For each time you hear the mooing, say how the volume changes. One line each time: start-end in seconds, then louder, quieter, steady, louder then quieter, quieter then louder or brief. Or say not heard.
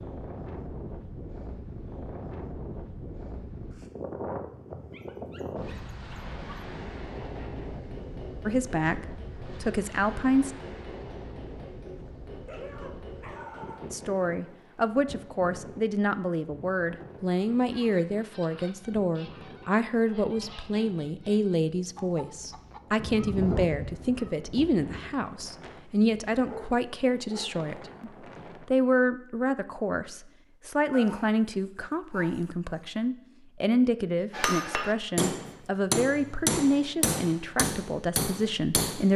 not heard.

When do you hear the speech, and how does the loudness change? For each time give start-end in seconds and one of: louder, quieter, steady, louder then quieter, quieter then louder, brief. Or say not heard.
8.4-10.5 brief
13.9-39.1 steady.